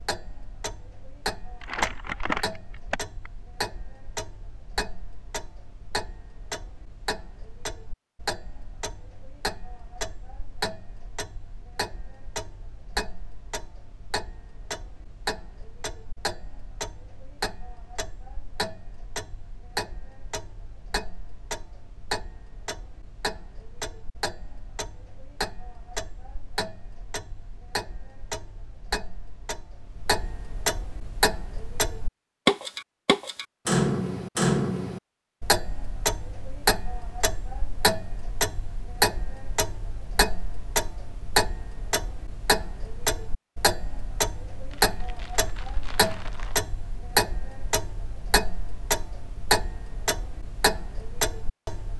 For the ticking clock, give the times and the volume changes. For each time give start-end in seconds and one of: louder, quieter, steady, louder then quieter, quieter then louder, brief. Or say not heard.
0.0-51.9 louder.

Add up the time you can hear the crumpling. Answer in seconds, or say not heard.
4 s.